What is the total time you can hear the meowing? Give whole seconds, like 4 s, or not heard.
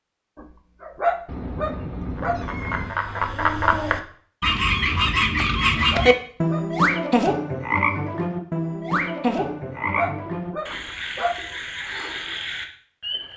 2 s.